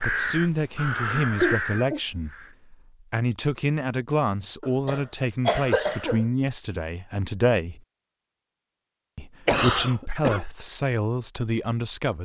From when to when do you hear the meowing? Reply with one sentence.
You can't hear the meowing here.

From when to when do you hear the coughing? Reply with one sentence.
You can hear the coughing from 1.1 to 2.0 s, from 4.6 to 6.2 s and from 9.4 to 10.4 s.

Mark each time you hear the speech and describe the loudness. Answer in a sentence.
You can hear the speech from 0.0 to 7.8 s, at a steady volume; and briefly from 9.2 to 12.1 s.